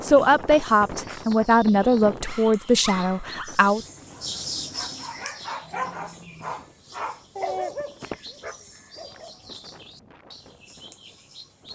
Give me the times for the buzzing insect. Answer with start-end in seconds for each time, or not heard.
not heard.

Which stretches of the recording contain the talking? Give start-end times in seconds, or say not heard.
0.0-3.8.